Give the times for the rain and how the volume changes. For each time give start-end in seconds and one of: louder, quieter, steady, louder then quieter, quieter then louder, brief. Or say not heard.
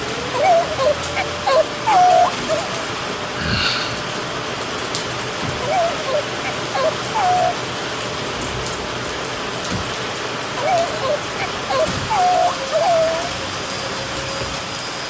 0.0-15.0 steady.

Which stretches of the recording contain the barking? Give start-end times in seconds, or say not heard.
0.3-2.5, 5.6-7.5, 10.6-13.3.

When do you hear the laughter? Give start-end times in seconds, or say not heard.
3.4-4.0.